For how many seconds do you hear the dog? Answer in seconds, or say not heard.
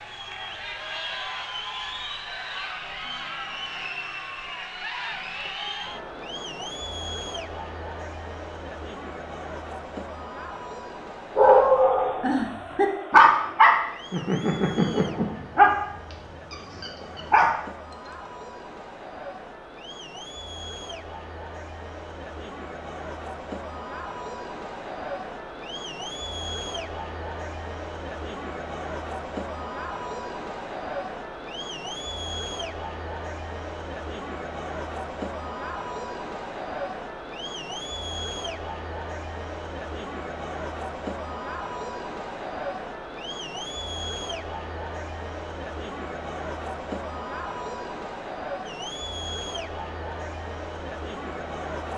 6 s.